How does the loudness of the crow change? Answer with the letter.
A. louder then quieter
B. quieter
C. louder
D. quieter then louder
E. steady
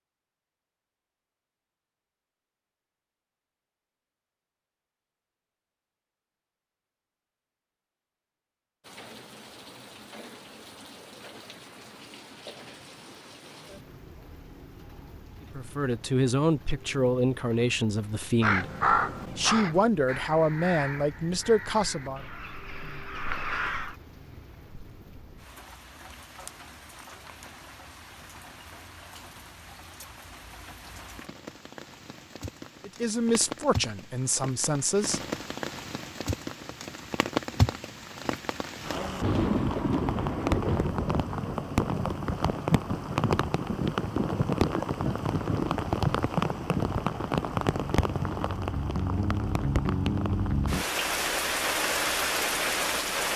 D.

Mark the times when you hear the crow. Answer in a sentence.
You can hear the crow from 18.4 to 23.9 s.